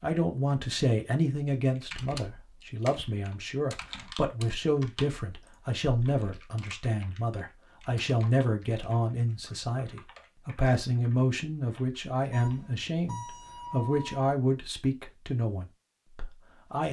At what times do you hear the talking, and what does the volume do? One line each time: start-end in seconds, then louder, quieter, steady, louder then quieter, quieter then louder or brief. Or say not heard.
0.0-16.8 steady.